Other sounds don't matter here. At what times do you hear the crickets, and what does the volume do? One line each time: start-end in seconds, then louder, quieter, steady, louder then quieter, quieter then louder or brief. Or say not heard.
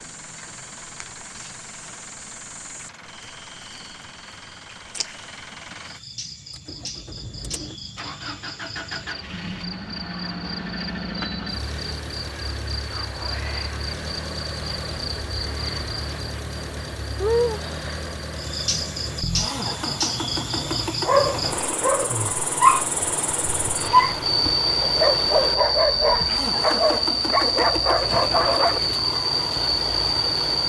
0.0-30.6 louder.